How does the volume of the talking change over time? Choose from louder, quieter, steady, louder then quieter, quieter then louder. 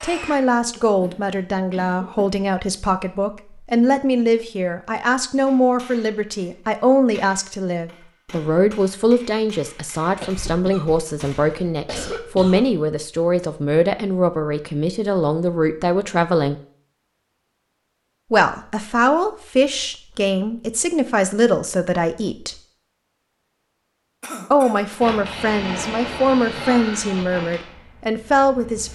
steady.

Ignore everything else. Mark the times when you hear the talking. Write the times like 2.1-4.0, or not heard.
0.0-16.6, 18.3-22.6, 24.5-28.9.